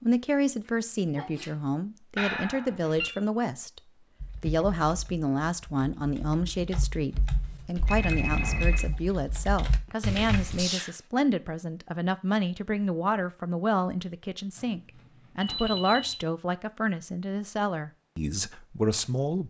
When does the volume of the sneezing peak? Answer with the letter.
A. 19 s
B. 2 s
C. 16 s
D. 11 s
D.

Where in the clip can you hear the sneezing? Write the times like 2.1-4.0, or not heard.
0.7-1.5, 9.8-11.0.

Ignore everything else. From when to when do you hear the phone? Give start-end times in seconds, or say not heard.
2.1-3.1, 7.8-8.9, 14.6-16.1.